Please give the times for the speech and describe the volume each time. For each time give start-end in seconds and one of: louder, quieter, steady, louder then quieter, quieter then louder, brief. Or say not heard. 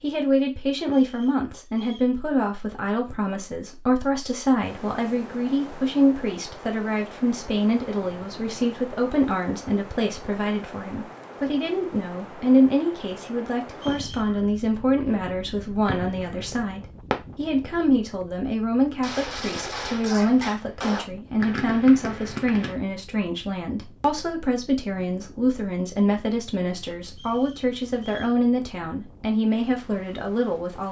0.0-30.8 steady.